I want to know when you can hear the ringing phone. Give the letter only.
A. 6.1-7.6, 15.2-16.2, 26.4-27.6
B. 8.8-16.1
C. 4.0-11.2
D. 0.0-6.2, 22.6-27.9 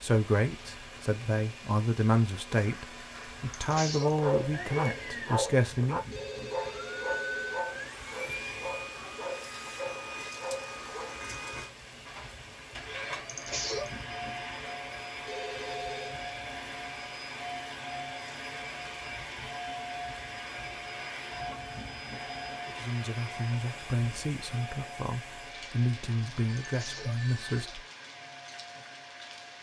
A.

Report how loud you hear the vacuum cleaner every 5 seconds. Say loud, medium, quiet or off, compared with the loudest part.
medium, loud, loud, loud, loud, medium.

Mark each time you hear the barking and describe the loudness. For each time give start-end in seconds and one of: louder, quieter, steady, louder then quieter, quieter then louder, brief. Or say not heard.
4.0-11.2 quieter.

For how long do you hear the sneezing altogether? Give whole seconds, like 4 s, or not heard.
3 s.